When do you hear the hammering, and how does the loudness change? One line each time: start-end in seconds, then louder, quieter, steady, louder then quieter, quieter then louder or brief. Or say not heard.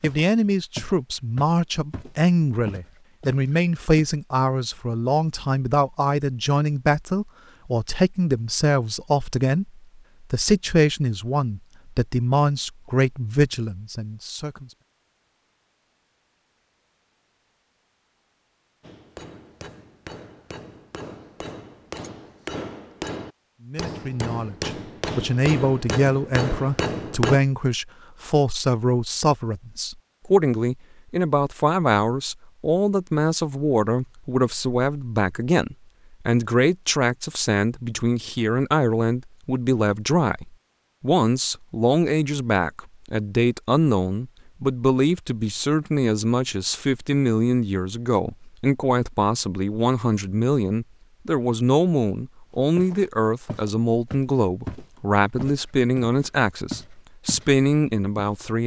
18.8-27.4 louder.